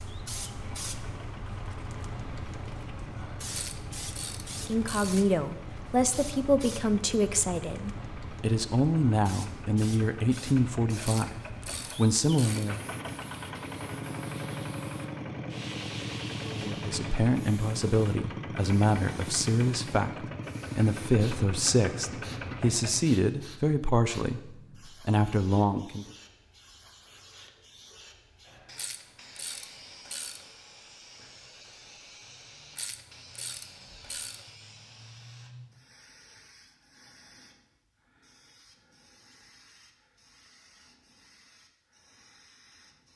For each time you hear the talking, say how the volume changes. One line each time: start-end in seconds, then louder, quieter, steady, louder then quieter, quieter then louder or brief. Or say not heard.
4.7-12.8 steady
16.6-26.1 steady.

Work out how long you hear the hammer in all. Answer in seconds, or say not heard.
not heard.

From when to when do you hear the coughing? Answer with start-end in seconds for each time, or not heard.
not heard.